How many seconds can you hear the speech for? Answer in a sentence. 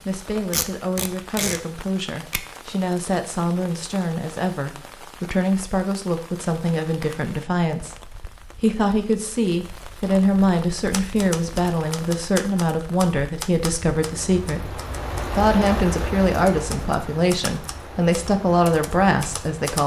The speech can be heard for 20 seconds in total.